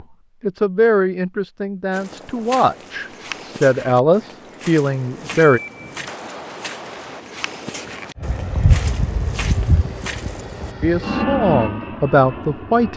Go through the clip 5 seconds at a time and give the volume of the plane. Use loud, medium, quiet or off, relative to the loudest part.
off, loud, loud.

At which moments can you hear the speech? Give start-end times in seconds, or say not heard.
0.4-5.6, 10.8-12.9.